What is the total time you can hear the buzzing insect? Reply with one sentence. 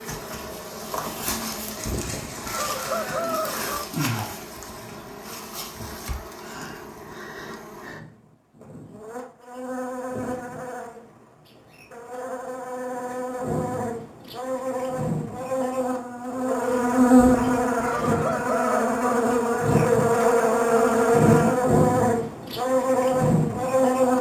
You can hear the buzzing insect for 24 seconds altogether.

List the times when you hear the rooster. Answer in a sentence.
You can hear the rooster from 1.9 to 3.9 s and from 17.1 to 19.0 s.